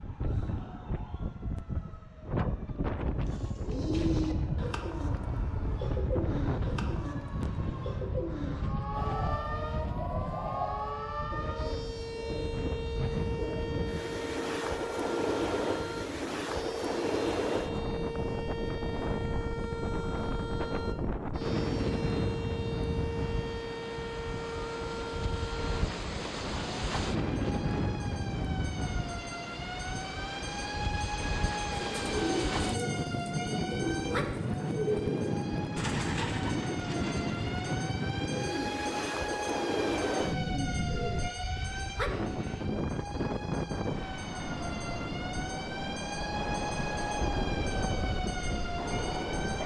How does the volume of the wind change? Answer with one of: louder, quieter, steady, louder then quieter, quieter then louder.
steady.